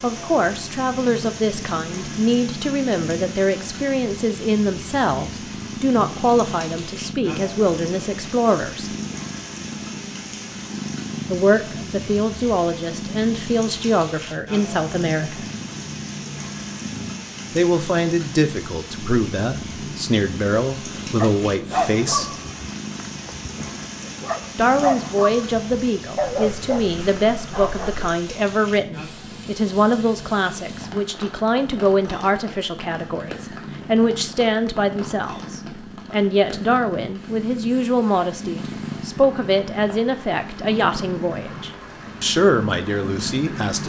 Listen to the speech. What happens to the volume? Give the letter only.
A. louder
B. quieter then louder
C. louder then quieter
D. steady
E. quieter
D.